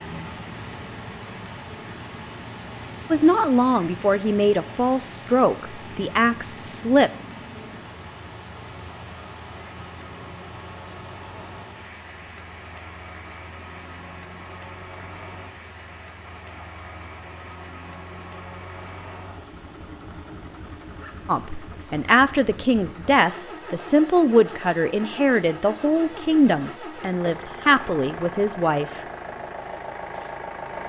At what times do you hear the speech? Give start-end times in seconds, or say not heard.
3.1-7.1, 21.2-29.0.